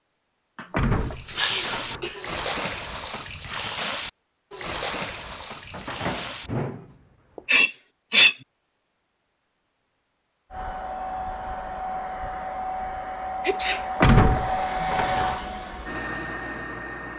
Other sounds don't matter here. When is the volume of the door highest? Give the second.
14 s.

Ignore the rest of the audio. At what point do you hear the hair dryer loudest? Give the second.
15 s.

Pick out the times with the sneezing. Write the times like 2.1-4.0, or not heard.
0.6-2.2, 7.5-8.3, 13.4-13.8.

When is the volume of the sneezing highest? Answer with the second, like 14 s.
8 s.